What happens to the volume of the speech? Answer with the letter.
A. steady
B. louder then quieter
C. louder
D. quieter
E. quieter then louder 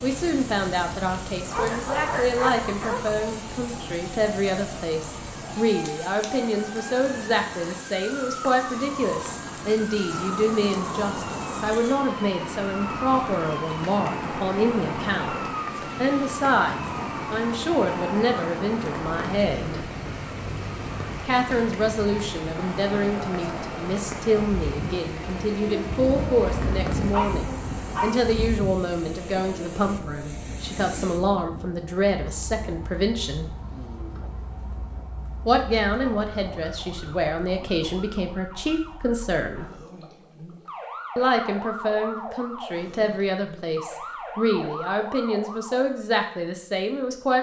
A.